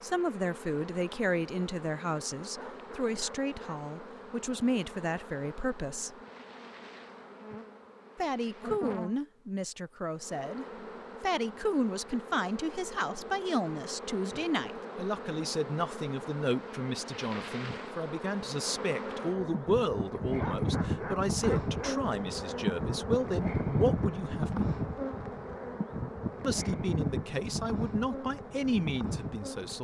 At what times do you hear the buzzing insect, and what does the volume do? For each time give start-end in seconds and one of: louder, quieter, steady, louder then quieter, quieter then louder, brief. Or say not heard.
0.0-29.7 louder.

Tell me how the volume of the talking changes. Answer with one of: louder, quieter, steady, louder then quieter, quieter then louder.
steady.